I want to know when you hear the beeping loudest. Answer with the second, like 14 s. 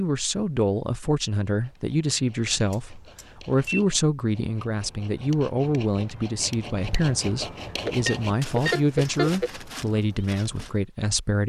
9 s.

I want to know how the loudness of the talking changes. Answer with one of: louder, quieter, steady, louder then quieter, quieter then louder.
steady.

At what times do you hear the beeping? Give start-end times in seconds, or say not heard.
2.7-3.8, 7.8-9.5.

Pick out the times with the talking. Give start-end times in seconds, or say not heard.
0.0-11.4.